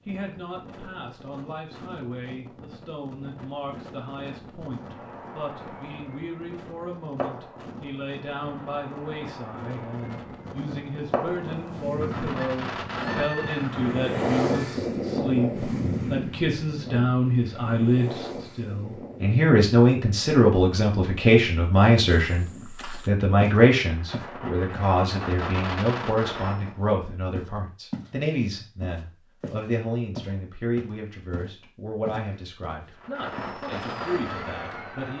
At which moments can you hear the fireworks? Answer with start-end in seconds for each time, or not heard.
4.7-14.8, 23.9-26.8, 33.0-35.1.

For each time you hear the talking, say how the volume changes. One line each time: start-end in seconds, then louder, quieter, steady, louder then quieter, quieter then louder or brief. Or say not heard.
0.1-35.1 louder then quieter.